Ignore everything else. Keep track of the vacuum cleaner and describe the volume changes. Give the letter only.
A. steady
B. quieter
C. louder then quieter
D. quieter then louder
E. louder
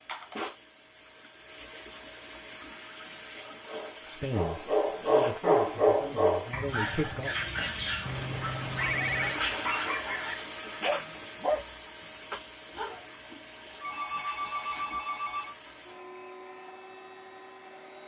C.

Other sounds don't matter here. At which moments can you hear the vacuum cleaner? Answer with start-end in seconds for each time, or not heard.
0.0-18.0.